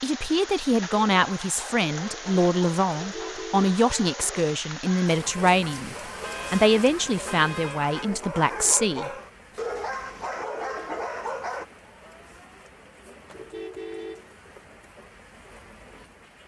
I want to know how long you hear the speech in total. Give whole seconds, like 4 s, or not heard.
9 s.